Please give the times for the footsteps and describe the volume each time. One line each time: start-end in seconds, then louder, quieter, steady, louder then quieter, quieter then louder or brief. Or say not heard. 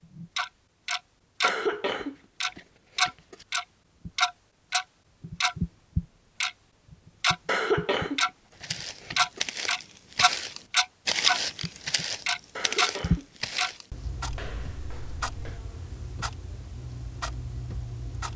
8.6-15.6 louder then quieter.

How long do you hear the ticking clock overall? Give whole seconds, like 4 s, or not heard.
17 s.